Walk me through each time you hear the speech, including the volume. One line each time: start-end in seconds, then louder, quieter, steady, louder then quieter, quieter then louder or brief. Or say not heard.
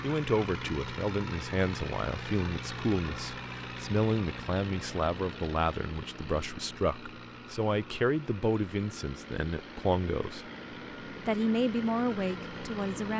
0.0-10.4 steady
11.2-13.1 brief.